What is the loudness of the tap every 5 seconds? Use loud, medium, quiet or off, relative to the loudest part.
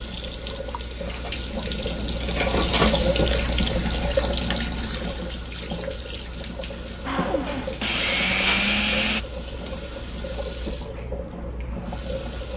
loud, medium, medium.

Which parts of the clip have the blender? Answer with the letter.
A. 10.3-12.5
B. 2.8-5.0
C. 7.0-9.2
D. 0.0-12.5
C.